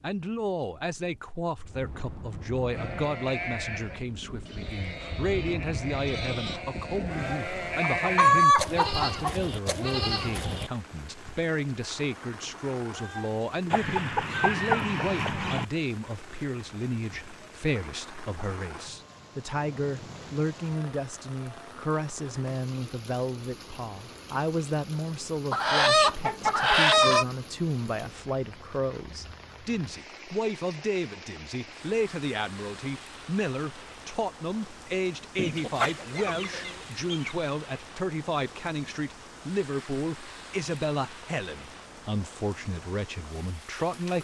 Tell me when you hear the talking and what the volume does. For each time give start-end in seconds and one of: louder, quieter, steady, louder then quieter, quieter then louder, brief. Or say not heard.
0.0-44.1 steady.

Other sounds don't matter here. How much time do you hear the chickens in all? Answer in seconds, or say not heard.
7 s.